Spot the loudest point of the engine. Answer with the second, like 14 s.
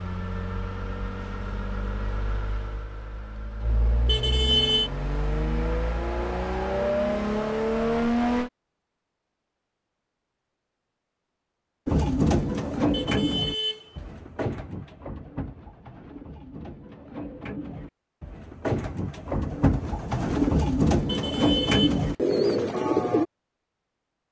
8 s.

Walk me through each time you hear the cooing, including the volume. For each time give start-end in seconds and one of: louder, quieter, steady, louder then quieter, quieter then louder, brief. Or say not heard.
11.8-23.2 quieter then louder.